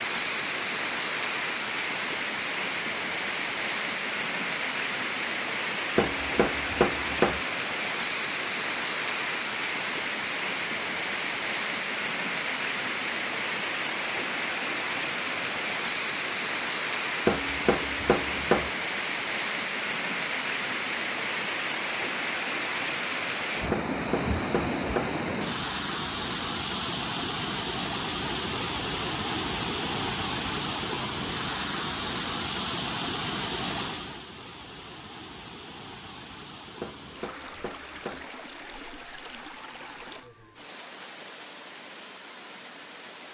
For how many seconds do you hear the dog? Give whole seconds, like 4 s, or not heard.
not heard.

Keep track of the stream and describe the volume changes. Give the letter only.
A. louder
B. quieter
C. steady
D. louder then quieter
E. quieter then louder
B.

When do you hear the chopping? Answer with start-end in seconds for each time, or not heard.
6.0-7.4, 17.2-18.7, 23.7-25.1, 36.8-38.2.